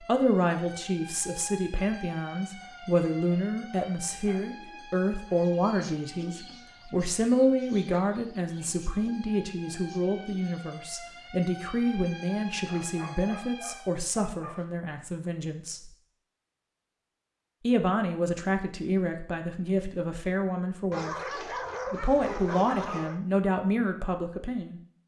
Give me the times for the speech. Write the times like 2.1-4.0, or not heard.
0.1-15.9, 17.6-21.1, 21.9-24.8.